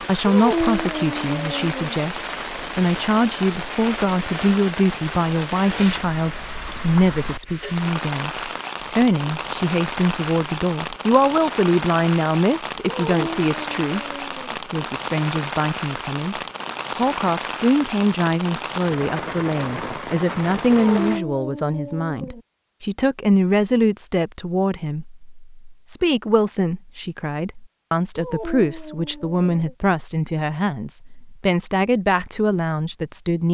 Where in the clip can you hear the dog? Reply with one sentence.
You can hear the dog from 0.2 to 1.9 s, from 12.8 to 14.6 s, from 20.7 to 22.4 s and from 28.1 to 29.8 s.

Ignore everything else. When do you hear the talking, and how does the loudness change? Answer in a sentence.
The talking can be heard from 0.0 to 33.4 s, at a steady volume.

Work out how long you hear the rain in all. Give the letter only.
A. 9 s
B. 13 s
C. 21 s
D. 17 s
C.